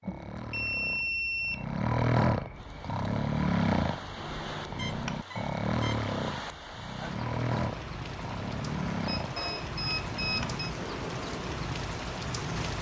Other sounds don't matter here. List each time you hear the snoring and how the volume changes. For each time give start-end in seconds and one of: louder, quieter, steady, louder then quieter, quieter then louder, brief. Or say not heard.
0.0-11.7 quieter.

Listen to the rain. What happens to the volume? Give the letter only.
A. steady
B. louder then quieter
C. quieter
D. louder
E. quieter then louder
D.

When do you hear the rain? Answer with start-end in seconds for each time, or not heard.
2.5-12.7.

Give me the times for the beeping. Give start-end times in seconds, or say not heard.
0.1-1.6, 4.8-6.0, 9.1-10.6.